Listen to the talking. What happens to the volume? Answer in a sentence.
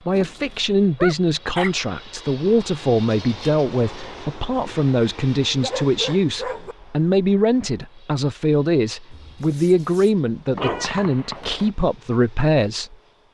The volume of the talking stays about the same.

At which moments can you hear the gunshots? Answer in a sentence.
The gunshots can be heard from 10.6 to 11.7 s.